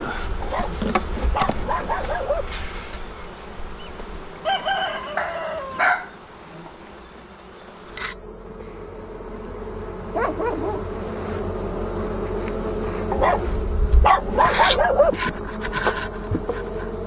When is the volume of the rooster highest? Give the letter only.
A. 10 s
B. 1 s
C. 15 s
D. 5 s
D.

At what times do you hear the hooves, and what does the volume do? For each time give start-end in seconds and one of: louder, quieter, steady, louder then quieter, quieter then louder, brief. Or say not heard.
not heard.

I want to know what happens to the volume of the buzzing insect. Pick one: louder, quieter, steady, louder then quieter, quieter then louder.
quieter then louder.